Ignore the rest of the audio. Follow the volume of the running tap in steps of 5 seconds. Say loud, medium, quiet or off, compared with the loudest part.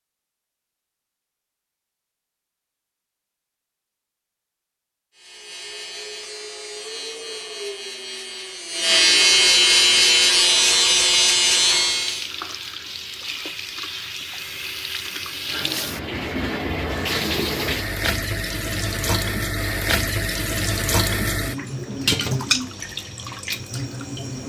off, off, medium, loud, loud.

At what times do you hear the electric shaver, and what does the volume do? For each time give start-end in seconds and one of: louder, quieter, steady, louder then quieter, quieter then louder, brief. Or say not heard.
5.2-12.3 louder.